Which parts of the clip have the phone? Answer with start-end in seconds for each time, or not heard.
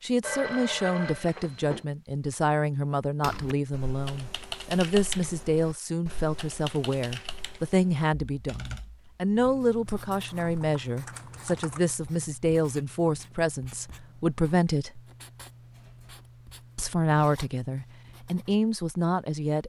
0.2-1.9.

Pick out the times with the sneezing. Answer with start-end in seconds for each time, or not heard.
not heard.